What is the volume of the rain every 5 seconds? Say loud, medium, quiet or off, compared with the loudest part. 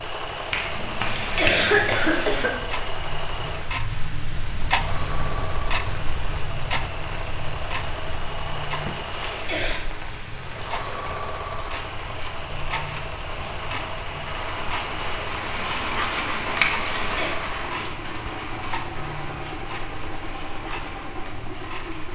medium, medium, medium, loud, medium.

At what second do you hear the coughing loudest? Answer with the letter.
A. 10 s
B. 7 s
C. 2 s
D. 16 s
C.